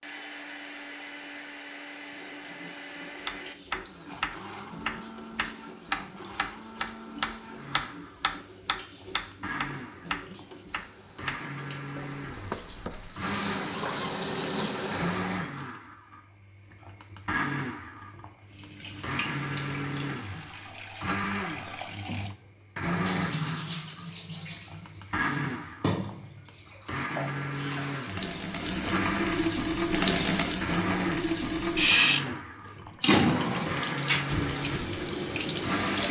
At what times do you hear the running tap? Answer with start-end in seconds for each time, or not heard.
1.9-15.5, 18.4-36.0.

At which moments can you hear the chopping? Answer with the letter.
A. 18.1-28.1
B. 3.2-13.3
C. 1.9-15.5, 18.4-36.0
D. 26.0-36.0
B.